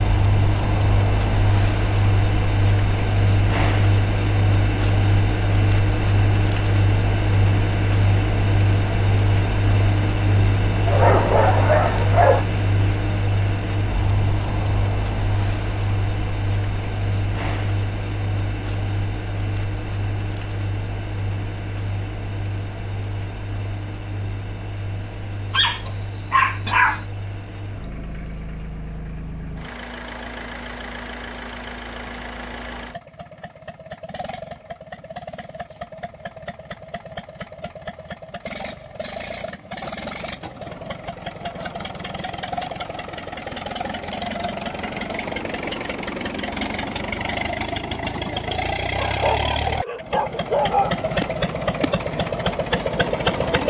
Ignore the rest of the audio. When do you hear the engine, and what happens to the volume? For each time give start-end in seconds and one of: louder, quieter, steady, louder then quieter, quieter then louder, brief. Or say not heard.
0.0-53.6 quieter then louder.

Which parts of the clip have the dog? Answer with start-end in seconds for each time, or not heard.
10.8-12.4, 25.5-27.0, 49.0-50.9.